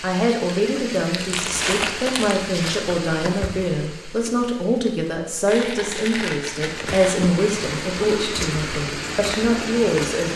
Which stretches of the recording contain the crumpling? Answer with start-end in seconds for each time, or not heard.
1.3-2.9, 5.5-7.2.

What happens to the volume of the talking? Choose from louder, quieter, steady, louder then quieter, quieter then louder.
steady.